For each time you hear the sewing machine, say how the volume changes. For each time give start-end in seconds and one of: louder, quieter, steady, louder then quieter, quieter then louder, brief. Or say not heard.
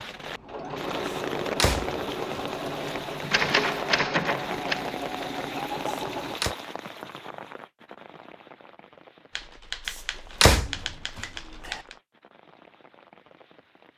0.0-6.4 steady.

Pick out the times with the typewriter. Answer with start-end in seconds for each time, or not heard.
3.3-4.8, 9.3-11.9.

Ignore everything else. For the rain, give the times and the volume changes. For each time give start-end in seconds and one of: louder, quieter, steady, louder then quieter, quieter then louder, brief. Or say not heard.
0.0-13.9 quieter.